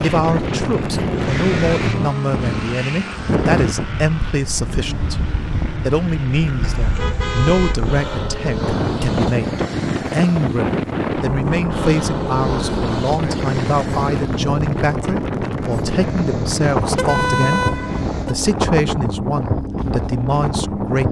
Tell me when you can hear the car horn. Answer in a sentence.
You can hear the car horn from 6.6 to 8.2 s and from 16.9 to 18.4 s.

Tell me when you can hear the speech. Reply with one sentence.
You can hear the speech from 0.0 to 21.0 s.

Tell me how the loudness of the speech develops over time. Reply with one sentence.
The loudness of the speech stays about the same.